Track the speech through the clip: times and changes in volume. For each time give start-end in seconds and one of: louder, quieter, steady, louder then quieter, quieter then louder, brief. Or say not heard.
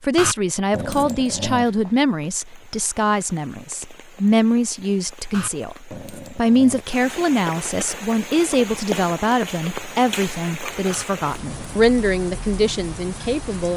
0.0-13.7 steady.